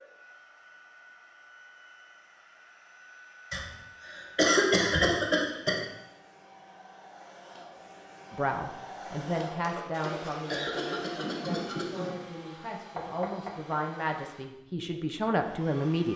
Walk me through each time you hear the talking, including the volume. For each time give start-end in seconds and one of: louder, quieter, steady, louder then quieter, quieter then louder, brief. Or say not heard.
8.3-16.1 quieter then louder.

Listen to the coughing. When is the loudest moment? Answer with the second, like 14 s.
5 s.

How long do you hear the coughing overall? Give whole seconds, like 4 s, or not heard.
5 s.